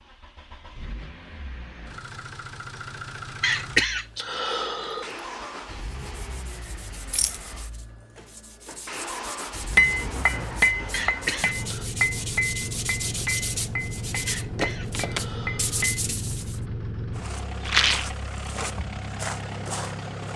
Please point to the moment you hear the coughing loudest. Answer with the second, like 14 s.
4 s.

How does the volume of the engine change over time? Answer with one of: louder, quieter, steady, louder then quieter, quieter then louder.
louder.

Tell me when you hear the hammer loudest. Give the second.
10 s.